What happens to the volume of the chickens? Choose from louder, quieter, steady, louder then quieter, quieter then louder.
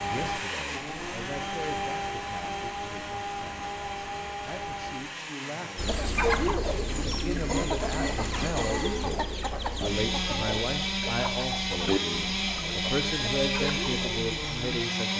quieter.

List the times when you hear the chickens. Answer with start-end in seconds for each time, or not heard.
5.8-14.6.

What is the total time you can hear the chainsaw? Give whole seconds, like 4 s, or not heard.
15 s.